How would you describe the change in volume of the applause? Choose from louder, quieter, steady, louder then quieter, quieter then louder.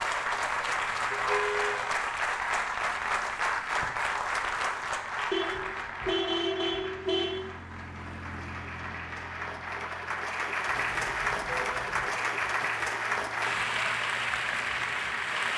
quieter then louder.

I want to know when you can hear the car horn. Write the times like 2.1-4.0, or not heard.
1.1-1.8, 5.3-7.2, 10.7-12.2.